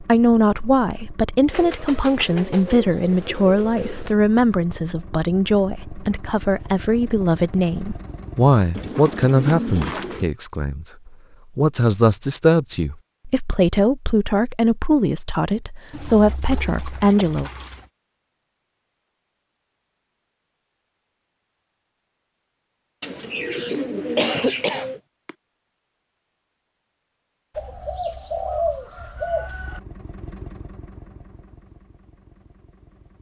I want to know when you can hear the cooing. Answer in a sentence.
The cooing can be heard from 1.5 to 4.2 s, from 8.7 to 10.2 s, from 15.9 to 17.9 s, from 23.0 to 25.0 s and from 27.6 to 29.8 s.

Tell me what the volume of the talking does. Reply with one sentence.
The volume of the talking stays about the same.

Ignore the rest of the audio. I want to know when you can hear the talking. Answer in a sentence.
The talking can be heard from 0.0 to 17.5 s.